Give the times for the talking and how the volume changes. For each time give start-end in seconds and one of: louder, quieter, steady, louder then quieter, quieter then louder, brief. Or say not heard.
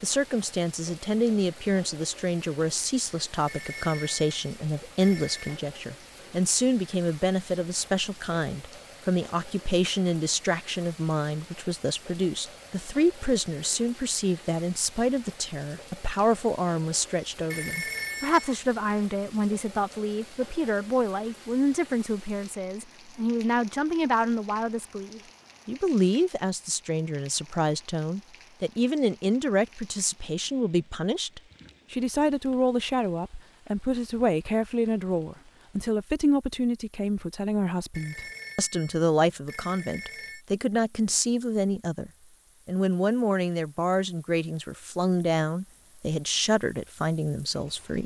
0.0-48.0 steady.